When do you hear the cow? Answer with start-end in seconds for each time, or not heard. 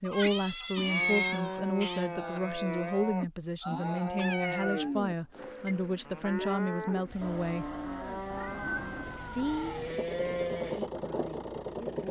0.6-10.9.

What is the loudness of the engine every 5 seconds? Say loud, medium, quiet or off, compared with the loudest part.
off, quiet, loud.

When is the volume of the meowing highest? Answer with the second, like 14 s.
1 s.